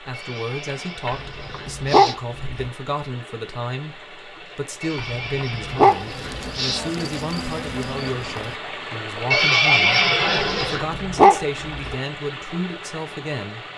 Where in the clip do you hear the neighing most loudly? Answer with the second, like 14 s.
10 s.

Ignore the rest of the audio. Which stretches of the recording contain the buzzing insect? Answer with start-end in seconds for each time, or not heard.
5.8-8.6.